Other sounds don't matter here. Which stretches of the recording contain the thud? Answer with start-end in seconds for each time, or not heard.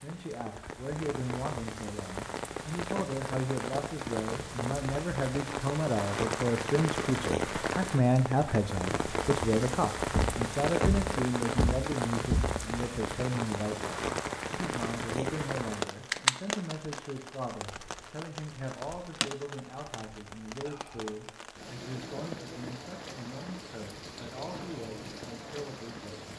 10.1-12.6.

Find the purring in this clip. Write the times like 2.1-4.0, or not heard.
not heard.